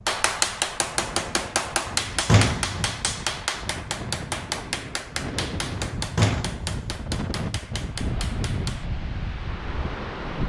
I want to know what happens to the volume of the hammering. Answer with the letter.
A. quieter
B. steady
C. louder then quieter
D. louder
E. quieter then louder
A.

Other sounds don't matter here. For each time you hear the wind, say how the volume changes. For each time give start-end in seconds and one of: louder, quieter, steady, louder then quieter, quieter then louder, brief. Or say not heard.
0.0-10.4 louder.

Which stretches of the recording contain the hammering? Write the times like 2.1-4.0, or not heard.
0.1-8.9.